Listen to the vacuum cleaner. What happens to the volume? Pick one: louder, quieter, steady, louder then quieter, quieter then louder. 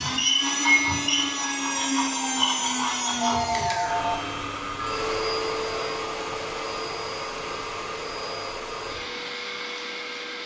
quieter.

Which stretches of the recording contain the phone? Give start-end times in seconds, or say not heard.
3.2-4.2.